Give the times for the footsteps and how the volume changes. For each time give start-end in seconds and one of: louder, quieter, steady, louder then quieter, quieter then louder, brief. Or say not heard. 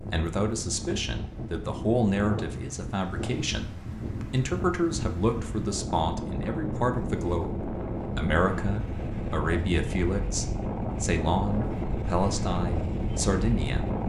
not heard.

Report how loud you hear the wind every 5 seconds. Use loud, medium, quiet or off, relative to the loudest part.
medium, loud, loud.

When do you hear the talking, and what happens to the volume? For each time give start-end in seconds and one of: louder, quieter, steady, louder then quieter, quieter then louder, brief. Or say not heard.
0.0-13.9 steady.